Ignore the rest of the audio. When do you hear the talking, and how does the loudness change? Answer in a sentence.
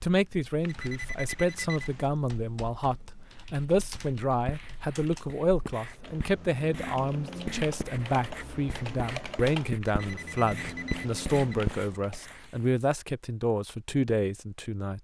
You can hear the talking from 0.0 to 14.9 s, at a steady volume.